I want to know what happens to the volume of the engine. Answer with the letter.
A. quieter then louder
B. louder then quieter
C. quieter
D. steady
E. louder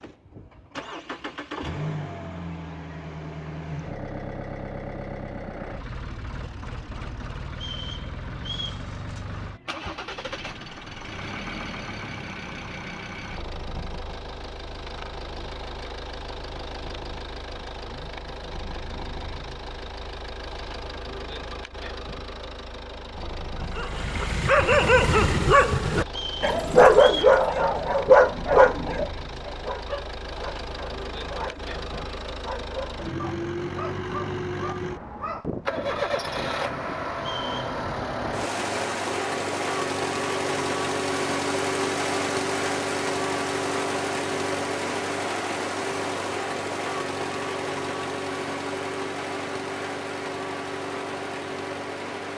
E.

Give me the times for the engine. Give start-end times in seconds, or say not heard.
0.0-52.3.